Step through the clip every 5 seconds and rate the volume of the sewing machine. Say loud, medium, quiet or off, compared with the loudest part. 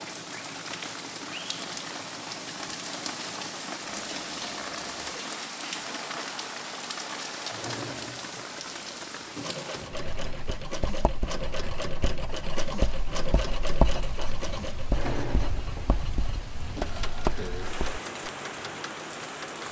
medium, medium, loud, loud.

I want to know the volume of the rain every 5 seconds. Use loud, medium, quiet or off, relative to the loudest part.
loud, loud, medium, loud.